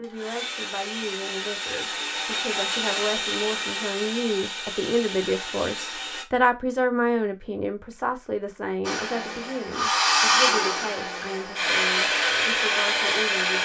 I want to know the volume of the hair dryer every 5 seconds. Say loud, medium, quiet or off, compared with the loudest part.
medium, medium, loud.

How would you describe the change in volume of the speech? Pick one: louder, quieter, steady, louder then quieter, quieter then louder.
louder then quieter.